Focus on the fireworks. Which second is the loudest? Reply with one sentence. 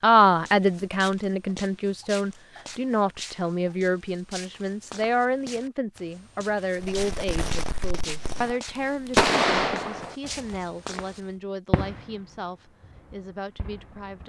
The volume of the fireworks peaks at 9 seconds.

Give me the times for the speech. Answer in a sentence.
You can hear the speech from 0.0 to 14.2 s.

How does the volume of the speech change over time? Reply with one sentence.
The loudness of the speech goes down.